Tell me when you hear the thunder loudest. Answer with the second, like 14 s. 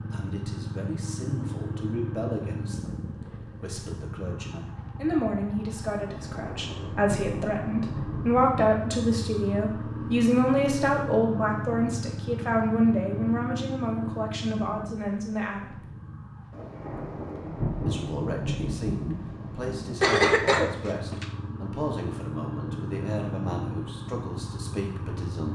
18 s.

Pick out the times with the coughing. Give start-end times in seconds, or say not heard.
20.0-21.2.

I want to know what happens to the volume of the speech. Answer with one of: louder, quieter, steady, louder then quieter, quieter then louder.
louder then quieter.